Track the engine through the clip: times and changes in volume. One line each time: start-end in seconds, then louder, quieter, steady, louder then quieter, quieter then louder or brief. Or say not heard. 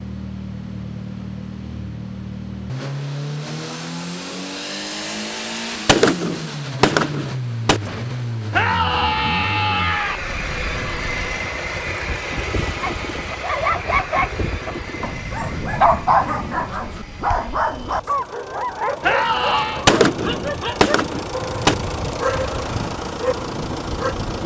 0.0-24.4 quieter then louder.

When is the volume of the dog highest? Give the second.
16 s.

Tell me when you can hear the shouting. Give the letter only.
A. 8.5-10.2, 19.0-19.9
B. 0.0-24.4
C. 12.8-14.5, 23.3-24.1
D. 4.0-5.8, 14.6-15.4
A.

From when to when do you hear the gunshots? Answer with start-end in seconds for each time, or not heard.
5.8-7.8, 19.9-21.8.